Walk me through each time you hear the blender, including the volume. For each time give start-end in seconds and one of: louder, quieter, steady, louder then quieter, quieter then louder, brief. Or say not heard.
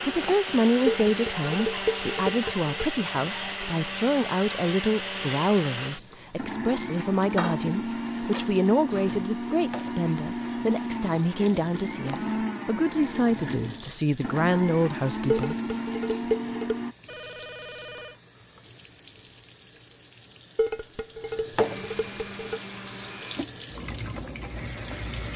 0.0-16.9 steady
21.6-23.4 brief.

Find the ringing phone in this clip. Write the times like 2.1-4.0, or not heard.
17.1-18.2.